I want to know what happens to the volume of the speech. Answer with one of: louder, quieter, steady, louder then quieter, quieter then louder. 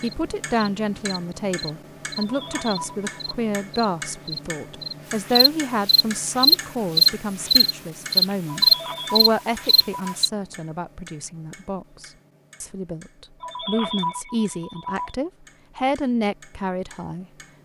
quieter then louder.